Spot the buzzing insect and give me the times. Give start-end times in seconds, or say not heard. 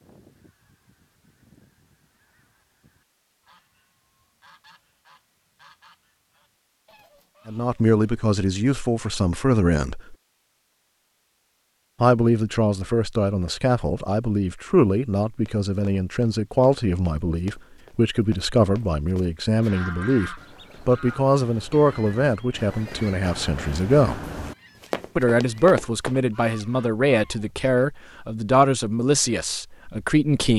not heard.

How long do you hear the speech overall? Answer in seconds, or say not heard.
20 s.